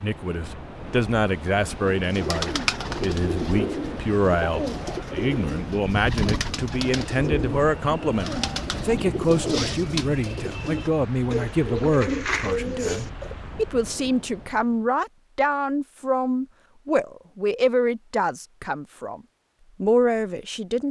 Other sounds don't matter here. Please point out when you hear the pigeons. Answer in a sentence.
The pigeons can be heard from 1.9 to 13.3 s.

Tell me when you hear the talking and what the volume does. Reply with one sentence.
You can hear the talking from 0.0 to 19.2 s, at a steady volume; and briefly from 19.8 to 20.8 s.